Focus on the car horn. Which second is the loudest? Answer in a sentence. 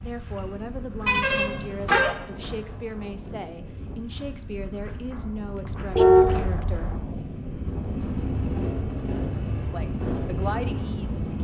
The volume of the car horn peaks at 6 seconds.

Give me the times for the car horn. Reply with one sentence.
The car horn can be heard from 1.1 to 2.1 s and from 6.0 to 6.8 s.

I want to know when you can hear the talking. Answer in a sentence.
You can hear the talking from 0.0 to 7.0 s and from 9.7 to 11.3 s.